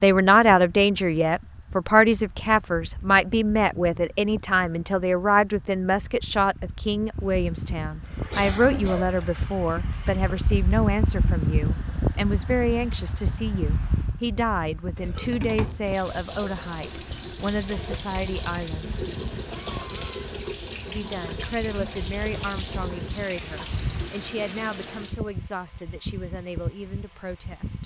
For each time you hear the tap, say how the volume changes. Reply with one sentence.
The tap can be heard briefly from 8.0 to 10.5 s; and from 14.9 to 25.2 s, at a steady volume.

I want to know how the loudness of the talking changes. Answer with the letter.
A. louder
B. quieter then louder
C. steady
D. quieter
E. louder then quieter
D.